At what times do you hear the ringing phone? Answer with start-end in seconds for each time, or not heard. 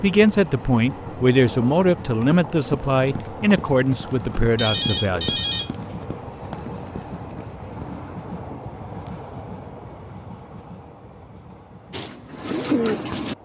4.5-5.7.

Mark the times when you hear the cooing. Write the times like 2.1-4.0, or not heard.
11.9-13.3.